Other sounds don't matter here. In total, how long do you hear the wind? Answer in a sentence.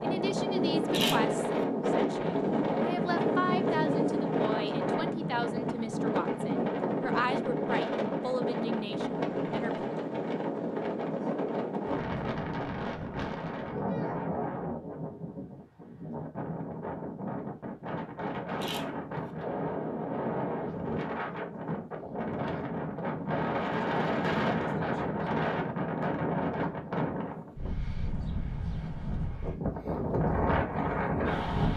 You can hear the wind for 32 seconds altogether.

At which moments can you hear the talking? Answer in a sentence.
You can hear the talking from 0.0 to 9.9 s.